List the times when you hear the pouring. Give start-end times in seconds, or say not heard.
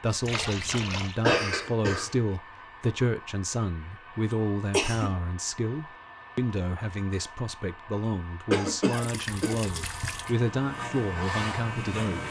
0.2-1.2, 8.9-10.3.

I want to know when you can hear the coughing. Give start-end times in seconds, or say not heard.
1.2-2.1, 4.3-5.1, 8.5-9.6.